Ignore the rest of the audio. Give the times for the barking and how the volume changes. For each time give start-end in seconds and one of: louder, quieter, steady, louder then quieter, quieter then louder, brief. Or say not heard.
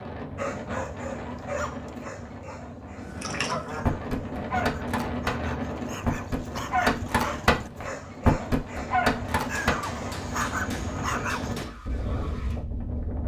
0.3-11.7 quieter then louder.